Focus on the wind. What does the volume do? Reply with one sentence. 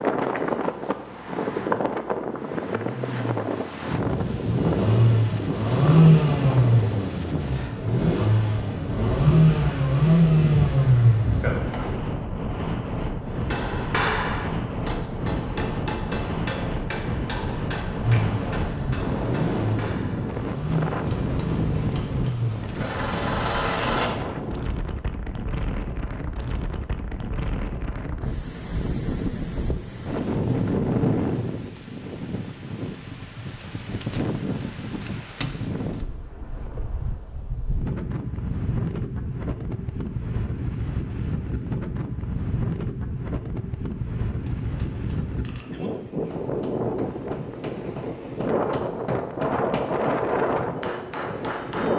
The loudness of the wind stays about the same.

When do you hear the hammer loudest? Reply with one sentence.
The volume of the hammer peaks at 14 seconds.